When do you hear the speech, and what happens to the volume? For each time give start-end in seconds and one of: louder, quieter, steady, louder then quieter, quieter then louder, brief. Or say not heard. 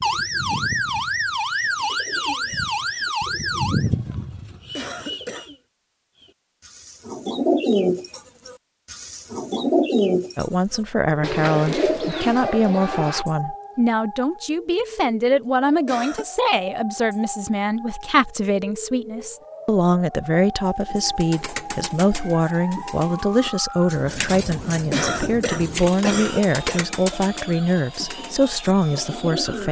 10.3-29.6 steady.